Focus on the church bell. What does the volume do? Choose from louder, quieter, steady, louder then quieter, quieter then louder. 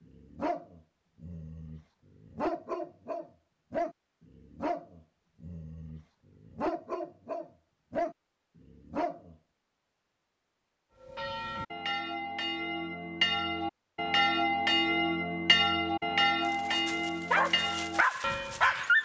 louder then quieter.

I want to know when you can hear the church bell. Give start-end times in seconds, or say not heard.
11.0-18.9.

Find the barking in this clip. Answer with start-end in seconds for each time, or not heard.
0.0-9.3, 16.4-19.0.